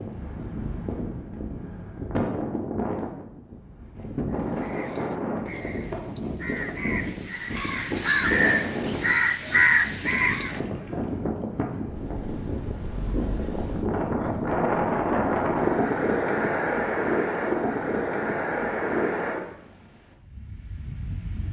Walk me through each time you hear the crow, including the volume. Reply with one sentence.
You can hear the crow from 4.3 to 10.6 s, getting louder.